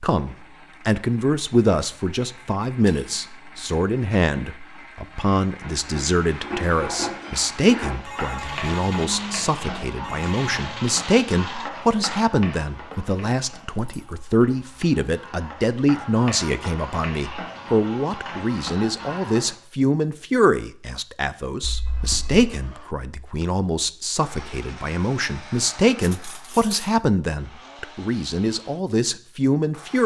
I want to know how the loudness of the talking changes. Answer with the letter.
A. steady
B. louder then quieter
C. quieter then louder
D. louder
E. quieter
A.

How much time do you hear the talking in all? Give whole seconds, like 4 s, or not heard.
30 s.